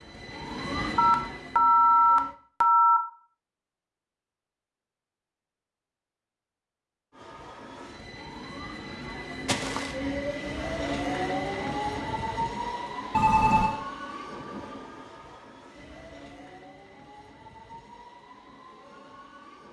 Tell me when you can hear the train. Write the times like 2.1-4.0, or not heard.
0.0-2.4, 7.1-19.6.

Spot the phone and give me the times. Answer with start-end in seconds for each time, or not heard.
0.9-3.0, 9.4-9.9, 13.1-13.8.